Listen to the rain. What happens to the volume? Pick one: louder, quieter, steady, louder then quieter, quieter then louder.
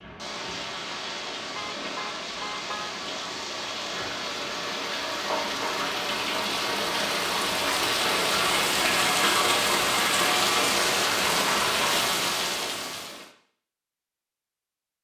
louder.